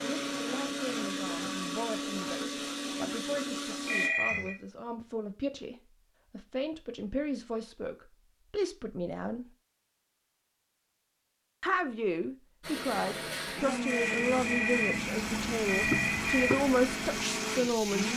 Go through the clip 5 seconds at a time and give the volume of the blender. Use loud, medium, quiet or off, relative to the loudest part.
loud, off, loud, loud.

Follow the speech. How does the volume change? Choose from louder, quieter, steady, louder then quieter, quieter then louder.
louder.